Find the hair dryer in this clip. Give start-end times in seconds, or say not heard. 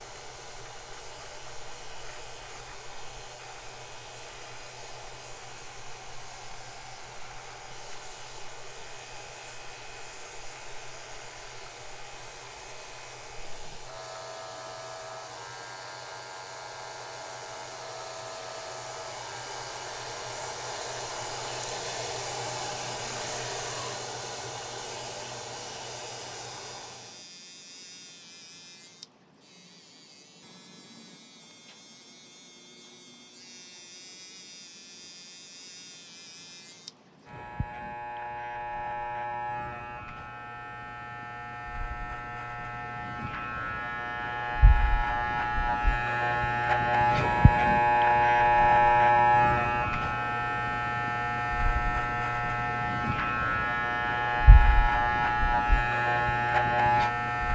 0.0-27.3.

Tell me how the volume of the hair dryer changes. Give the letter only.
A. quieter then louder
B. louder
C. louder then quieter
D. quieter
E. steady
B.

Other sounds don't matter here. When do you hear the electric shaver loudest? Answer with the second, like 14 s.
49 s.